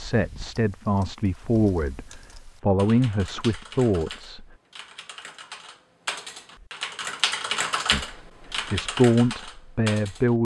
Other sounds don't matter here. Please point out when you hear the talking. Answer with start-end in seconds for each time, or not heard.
0.0-4.5, 7.9-10.3.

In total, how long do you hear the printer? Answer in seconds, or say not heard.
not heard.